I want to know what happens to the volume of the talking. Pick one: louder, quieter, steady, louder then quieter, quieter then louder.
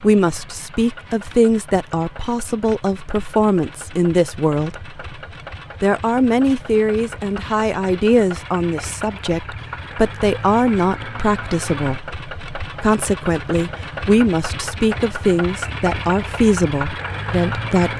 steady.